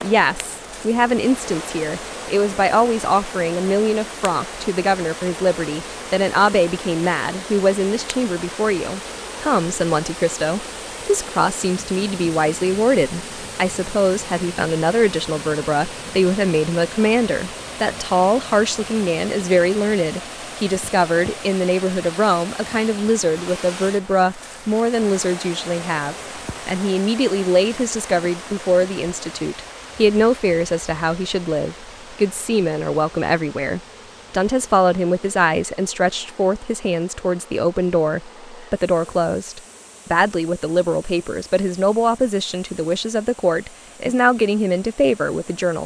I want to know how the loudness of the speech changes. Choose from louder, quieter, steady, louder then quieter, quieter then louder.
steady.